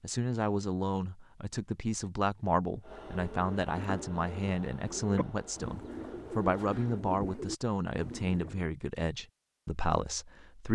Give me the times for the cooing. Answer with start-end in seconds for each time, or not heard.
3.1-8.7.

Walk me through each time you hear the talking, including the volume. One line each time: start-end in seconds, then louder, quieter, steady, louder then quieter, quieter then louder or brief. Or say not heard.
0.0-10.6 steady.